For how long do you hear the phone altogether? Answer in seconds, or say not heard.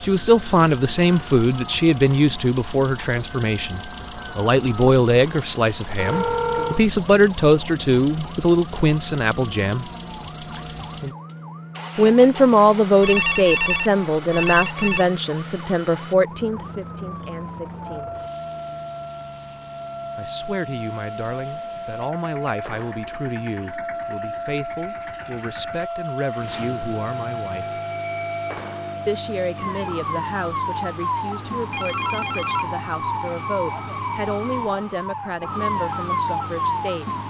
4 s.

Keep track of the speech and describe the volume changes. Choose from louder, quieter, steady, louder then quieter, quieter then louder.
quieter.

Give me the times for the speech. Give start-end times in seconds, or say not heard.
0.0-9.8, 11.9-18.1, 20.1-27.8, 29.1-37.0.